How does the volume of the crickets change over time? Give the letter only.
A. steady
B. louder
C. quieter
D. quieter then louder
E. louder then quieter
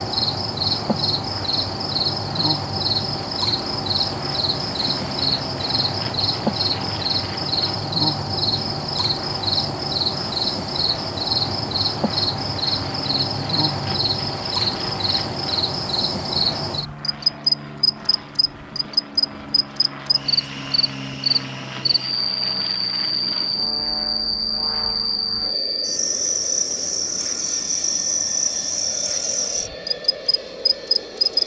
A.